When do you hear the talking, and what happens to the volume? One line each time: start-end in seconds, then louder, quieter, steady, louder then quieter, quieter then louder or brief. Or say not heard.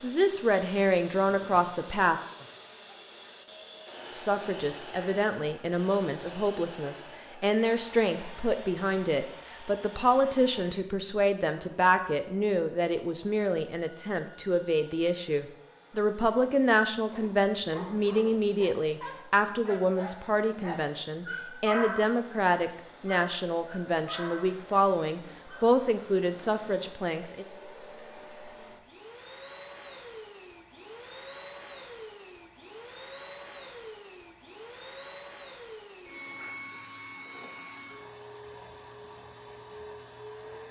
0.0-2.1 brief
4.1-27.4 steady.